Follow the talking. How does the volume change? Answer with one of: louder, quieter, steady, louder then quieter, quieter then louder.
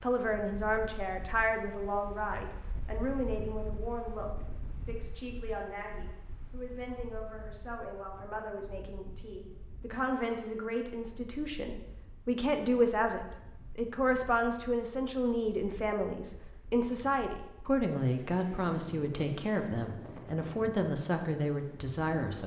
quieter then louder.